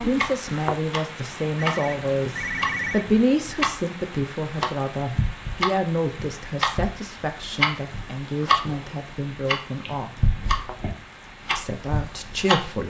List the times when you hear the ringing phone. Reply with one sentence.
You can hear the ringing phone from 1.6 to 3.0 s.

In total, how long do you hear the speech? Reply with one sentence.
The speech can be heard for 11 seconds in total.